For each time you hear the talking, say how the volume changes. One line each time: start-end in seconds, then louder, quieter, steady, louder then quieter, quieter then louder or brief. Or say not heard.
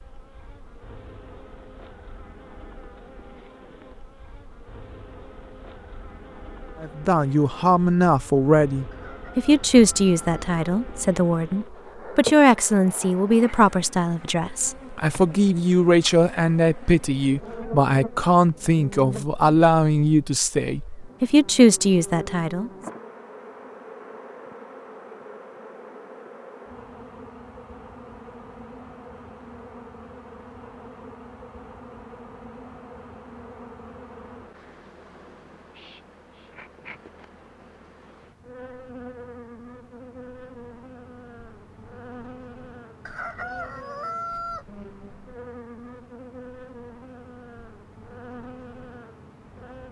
6.8-22.7 steady.